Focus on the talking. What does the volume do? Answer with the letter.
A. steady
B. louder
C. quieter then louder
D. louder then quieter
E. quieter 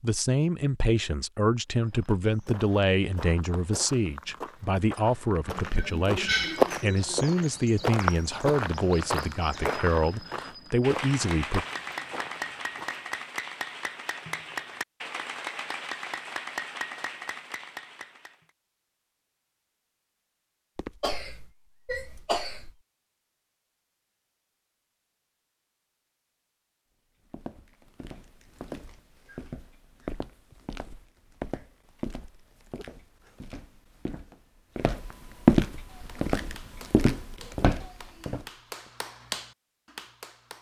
A.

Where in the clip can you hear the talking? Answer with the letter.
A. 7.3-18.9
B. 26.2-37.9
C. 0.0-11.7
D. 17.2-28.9
C.